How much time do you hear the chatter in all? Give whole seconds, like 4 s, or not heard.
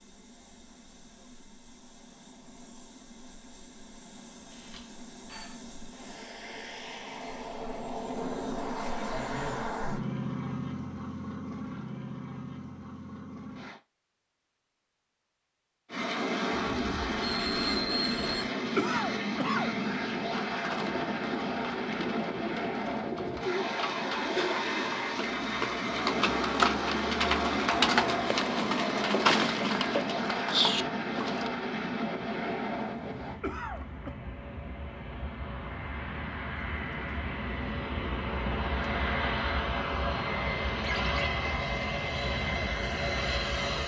not heard.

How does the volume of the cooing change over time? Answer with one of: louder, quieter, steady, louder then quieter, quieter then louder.
louder.